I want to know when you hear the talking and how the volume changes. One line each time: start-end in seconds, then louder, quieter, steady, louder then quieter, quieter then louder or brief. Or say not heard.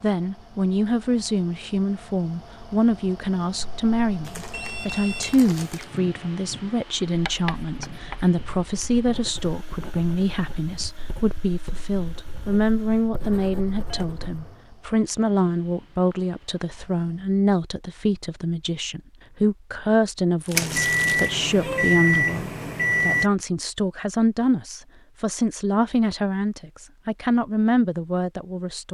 0.0-28.8 steady.